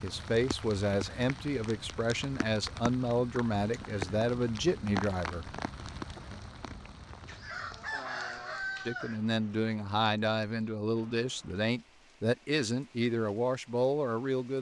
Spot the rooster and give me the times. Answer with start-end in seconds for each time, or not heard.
7.2-9.2.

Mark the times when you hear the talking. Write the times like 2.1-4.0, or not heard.
0.0-5.5, 8.8-14.5.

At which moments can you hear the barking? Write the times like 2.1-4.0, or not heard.
not heard.